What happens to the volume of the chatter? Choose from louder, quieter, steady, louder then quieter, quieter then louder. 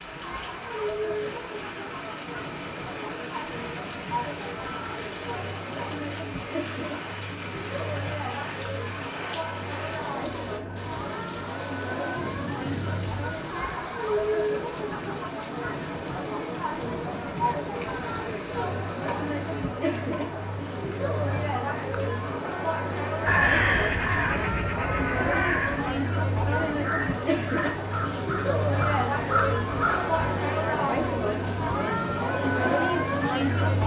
louder.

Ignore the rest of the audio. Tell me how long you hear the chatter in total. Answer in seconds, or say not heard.
34 s.